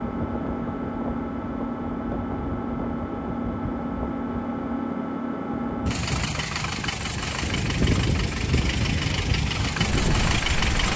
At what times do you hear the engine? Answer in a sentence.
You can hear the engine from 0.0 to 10.9 s.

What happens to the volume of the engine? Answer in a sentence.
The volume of the engine stays about the same.